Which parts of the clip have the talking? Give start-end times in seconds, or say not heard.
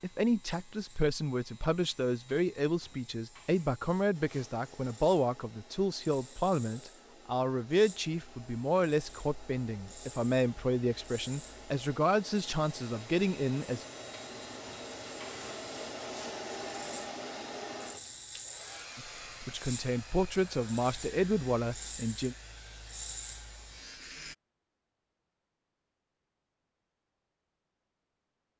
0.0-13.8, 18.9-22.4.